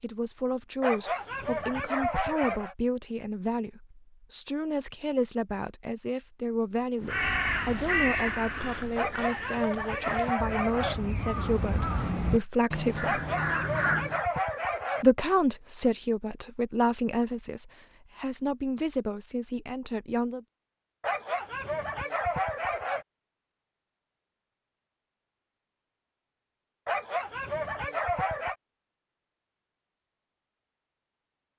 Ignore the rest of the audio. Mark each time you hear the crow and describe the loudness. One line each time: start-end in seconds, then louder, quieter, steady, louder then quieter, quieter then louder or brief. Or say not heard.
7.0-14.2 quieter then louder.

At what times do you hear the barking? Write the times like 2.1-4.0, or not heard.
0.8-2.8, 8.9-10.9, 13.0-15.1, 21.0-23.1, 26.9-28.6.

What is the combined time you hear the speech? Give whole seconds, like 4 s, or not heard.
19 s.